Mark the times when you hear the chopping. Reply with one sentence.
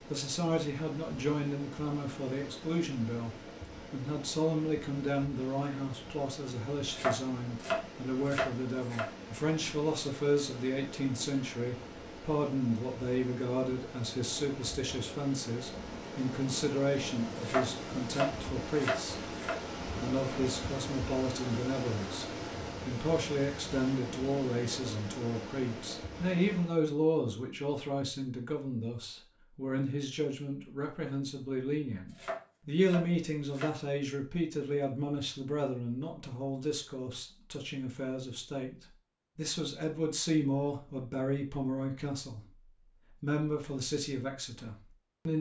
The chopping can be heard from 6.8 to 9.1 s, from 17.4 to 19.6 s and from 32.1 to 33.7 s.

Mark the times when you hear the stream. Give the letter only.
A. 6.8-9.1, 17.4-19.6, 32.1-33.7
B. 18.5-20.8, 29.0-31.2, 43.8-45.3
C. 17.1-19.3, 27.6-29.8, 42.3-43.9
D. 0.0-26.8
D.